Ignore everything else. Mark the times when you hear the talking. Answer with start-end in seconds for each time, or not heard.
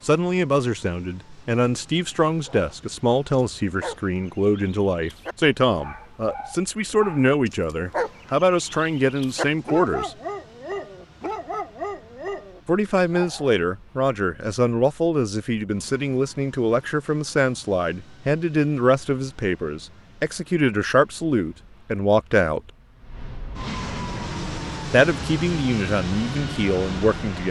0.1-10.2, 12.7-22.6, 24.9-27.4.